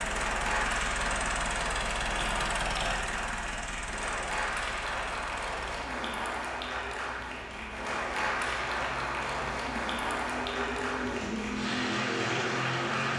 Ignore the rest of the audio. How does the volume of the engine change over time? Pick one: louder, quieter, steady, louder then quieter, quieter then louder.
quieter then louder.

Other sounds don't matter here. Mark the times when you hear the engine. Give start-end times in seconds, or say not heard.
0.0-13.1.